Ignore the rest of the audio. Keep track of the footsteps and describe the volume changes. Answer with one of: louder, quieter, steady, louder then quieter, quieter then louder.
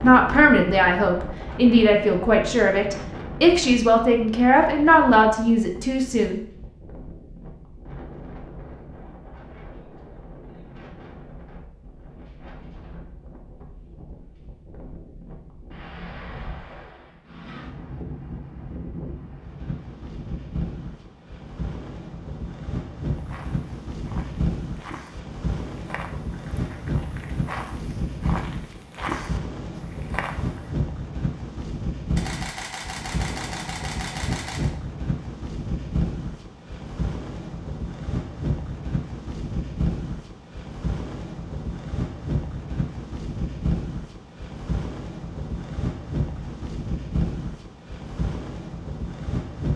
louder.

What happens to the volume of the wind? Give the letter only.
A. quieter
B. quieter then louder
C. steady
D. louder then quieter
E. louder
E.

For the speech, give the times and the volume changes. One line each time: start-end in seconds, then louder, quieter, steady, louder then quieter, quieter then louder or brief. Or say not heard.
0.0-6.4 steady.